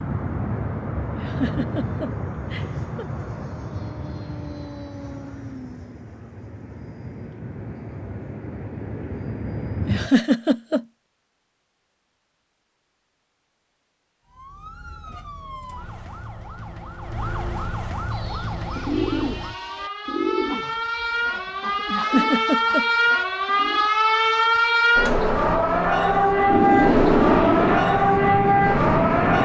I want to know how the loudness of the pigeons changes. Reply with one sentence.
The volume of the pigeons goes down.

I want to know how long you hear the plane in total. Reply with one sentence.
You can hear the plane for 13 seconds altogether.